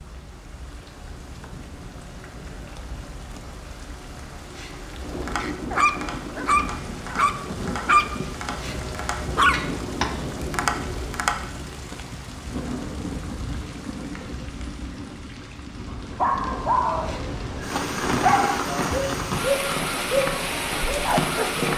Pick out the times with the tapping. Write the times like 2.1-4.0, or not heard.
5.2-11.5, 18.6-21.7.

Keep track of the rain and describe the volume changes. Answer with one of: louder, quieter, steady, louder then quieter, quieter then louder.
louder.